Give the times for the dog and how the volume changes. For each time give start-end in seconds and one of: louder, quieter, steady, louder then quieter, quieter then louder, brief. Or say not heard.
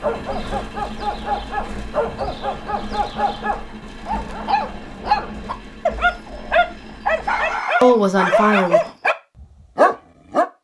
0.0-10.4 louder.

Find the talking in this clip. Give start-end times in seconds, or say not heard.
7.8-8.8.